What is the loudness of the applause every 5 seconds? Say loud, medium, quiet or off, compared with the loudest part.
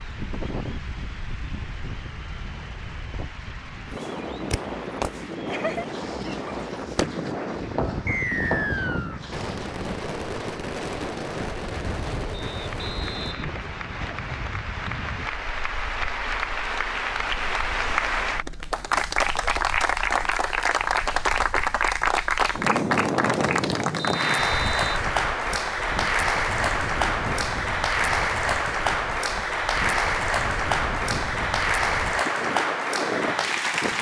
quiet, quiet, quiet, loud, loud, loud, loud.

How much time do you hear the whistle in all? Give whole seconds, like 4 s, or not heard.
4 s.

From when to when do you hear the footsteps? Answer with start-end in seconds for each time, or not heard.
not heard.